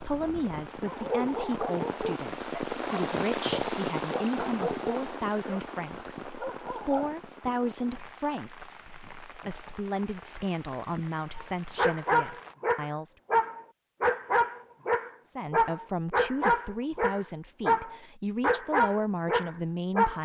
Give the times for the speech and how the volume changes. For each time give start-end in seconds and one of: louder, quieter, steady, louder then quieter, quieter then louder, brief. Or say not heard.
0.0-13.2 steady
15.2-20.1 quieter then louder.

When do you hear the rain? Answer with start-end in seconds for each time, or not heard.
0.0-12.6.